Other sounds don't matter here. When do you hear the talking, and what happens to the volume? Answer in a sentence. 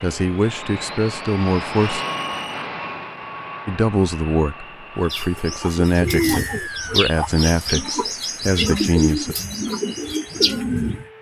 You can hear the talking briefly from 0.0 to 2.0 s; and from 3.6 to 9.3 s, at a steady volume.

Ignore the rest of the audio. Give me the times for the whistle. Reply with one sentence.
You can hear the whistle from 1.9 to 2.6 s and from 6.0 to 7.0 s.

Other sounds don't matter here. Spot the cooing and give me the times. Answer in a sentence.
You can hear the cooing from 5.0 to 11.1 s.